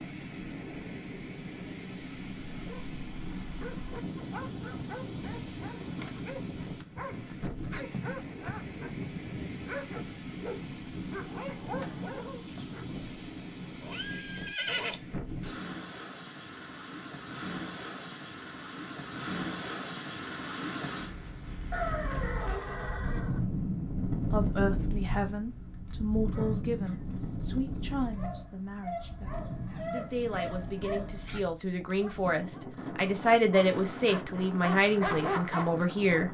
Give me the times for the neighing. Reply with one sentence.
The neighing can be heard from 13.8 to 15.0 s and from 21.7 to 23.4 s.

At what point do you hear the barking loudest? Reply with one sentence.
The loudest moment of the barking is at 35 seconds.